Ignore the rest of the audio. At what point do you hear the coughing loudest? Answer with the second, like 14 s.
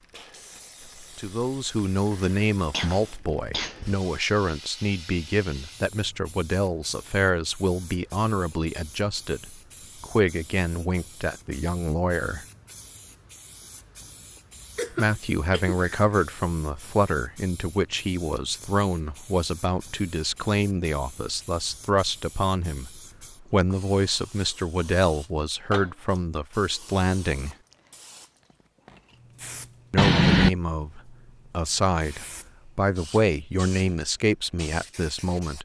30 s.